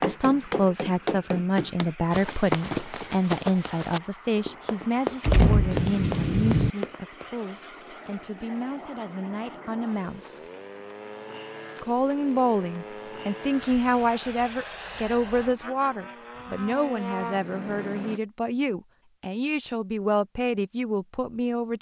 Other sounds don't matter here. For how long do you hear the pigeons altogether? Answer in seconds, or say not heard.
not heard.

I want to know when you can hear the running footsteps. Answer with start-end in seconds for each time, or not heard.
0.0-7.2.